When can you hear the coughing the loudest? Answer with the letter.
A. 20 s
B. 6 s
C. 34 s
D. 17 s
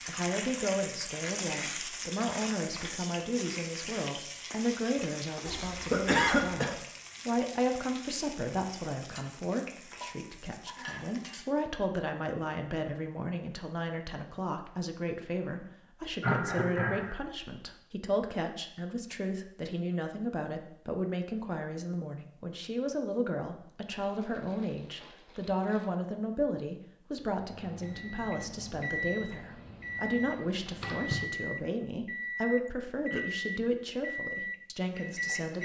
B.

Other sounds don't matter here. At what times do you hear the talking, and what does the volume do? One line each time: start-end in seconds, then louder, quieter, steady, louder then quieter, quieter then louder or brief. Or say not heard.
0.1-35.6 steady.